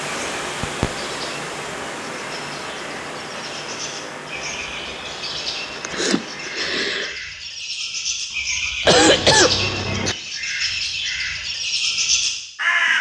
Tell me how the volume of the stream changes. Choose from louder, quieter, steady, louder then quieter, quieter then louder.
quieter.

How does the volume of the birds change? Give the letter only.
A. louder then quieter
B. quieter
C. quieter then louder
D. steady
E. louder
E.